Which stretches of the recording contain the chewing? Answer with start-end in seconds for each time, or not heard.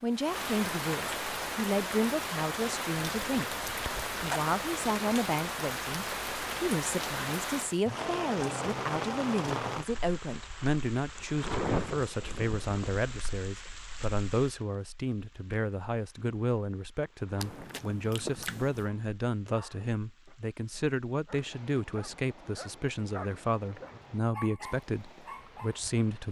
2.9-4.5, 17.4-18.9.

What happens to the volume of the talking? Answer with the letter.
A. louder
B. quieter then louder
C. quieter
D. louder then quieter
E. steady
E.